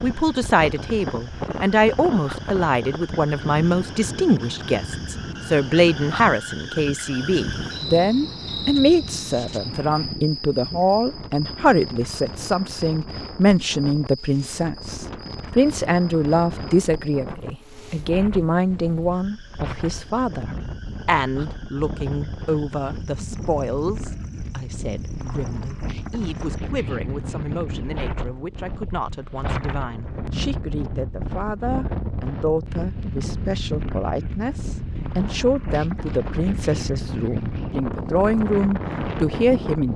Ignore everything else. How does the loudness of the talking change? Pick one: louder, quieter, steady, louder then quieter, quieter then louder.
quieter then louder.